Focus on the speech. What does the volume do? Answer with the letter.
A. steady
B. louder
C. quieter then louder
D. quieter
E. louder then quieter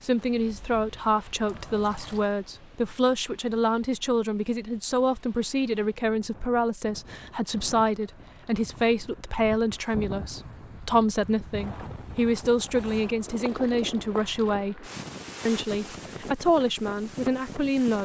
A.